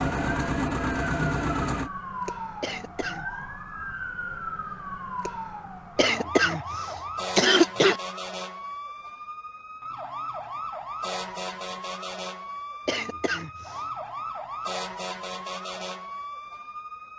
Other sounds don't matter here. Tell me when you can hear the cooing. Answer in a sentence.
You can't hear the cooing here.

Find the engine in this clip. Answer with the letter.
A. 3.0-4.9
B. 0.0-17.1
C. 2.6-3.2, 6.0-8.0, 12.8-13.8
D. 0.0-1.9
D.